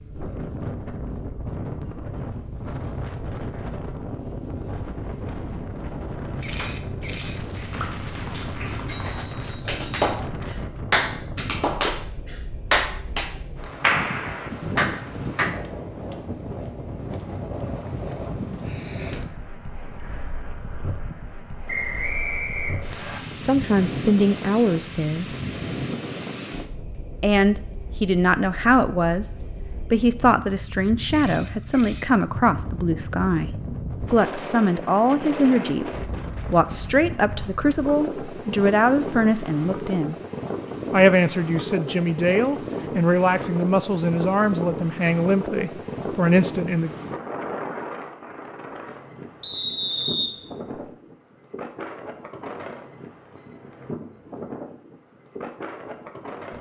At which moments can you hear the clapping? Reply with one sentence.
The clapping can be heard from 6.5 to 15.5 s.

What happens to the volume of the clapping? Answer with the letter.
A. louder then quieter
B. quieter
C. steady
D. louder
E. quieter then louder
D.